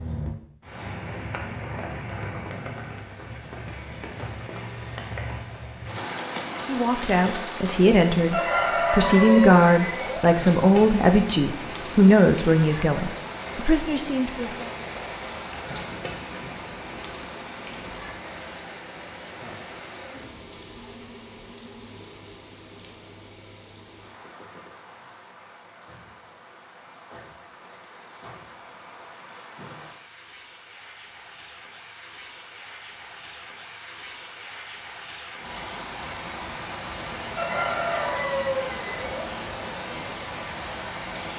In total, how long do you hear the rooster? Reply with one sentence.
The rooster can be heard for 4 seconds in total.